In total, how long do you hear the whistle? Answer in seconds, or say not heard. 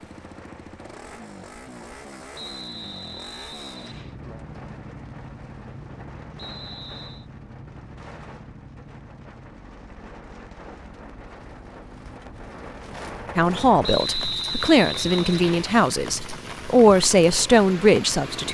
5 s.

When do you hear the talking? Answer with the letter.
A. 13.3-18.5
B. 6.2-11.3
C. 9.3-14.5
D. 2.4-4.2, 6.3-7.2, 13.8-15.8
A.